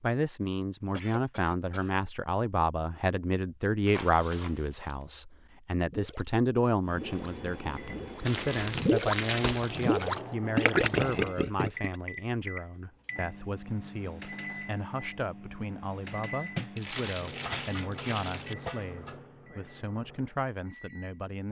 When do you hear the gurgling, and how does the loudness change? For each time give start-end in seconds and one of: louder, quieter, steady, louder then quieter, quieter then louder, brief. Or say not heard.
5.8-11.9 louder.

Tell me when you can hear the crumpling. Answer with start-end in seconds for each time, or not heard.
3.9-5.0, 8.2-10.2, 16.6-18.6.